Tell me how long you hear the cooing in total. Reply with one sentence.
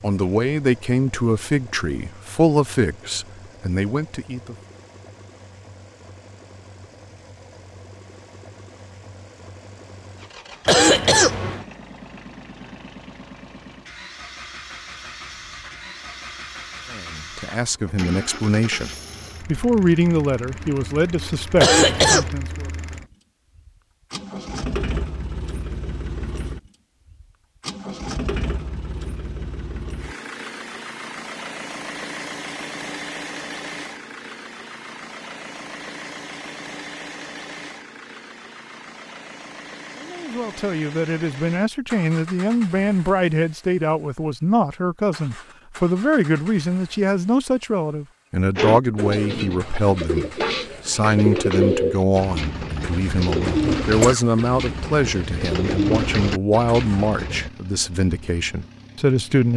You can hear the cooing for 9 seconds altogether.